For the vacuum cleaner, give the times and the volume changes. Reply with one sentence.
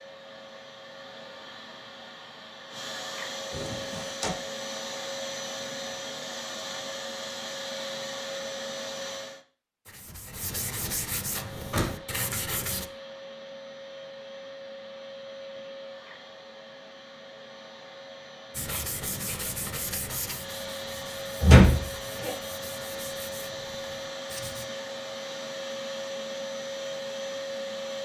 The vacuum cleaner can be heard from 0.0 to 9.4 s, getting louder; and from 11.3 to 28.0 s, getting louder.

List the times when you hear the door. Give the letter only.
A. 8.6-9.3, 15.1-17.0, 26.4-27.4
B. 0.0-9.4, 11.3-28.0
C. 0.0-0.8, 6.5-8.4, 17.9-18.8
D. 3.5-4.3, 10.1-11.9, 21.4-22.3
D.